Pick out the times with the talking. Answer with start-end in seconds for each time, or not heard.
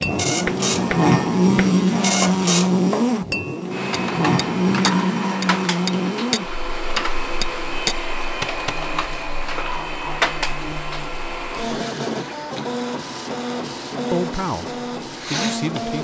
14.1-15.9.